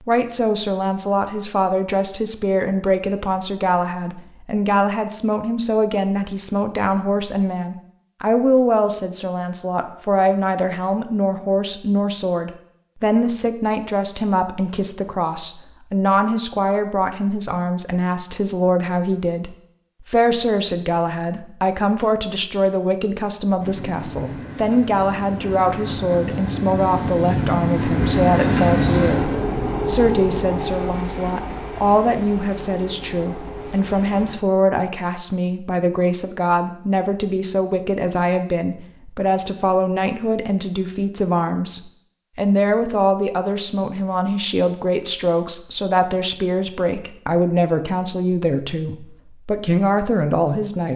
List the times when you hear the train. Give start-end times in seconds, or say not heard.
23.6-34.4.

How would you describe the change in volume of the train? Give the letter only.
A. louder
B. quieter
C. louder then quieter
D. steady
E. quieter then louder
C.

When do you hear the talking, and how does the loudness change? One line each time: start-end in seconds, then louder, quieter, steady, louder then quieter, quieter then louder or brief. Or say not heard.
0.1-50.9 steady.